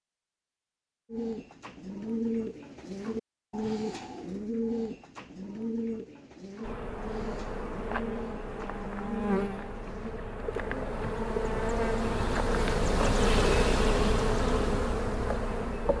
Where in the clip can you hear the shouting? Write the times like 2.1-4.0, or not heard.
not heard.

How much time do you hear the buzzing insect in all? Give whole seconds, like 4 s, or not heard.
9 s.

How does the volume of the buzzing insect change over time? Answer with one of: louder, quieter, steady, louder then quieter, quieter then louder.
louder.